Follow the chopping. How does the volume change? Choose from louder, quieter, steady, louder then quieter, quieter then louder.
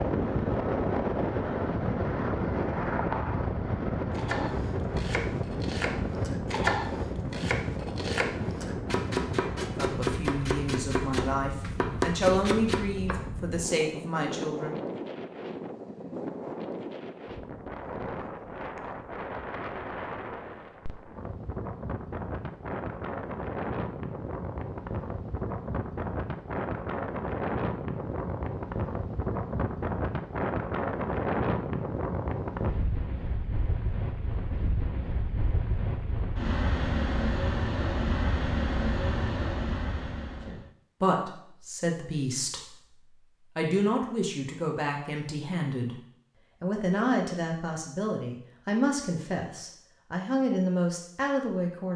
louder.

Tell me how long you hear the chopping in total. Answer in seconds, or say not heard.
9 s.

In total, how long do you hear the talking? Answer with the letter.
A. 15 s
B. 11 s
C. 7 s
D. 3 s
A.